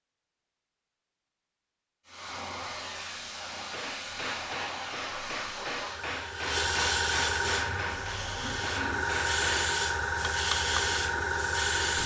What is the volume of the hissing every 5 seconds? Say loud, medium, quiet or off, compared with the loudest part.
medium, loud, loud.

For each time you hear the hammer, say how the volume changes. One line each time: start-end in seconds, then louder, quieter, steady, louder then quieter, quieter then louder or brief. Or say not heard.
3.7-10.9 steady.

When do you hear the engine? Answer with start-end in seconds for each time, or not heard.
7.4-9.2.